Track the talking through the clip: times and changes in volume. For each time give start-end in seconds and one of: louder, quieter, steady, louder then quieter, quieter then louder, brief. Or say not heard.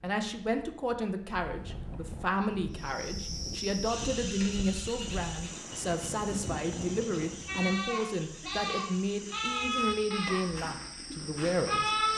0.0-12.1 steady.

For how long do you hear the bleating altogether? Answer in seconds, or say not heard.
5 s.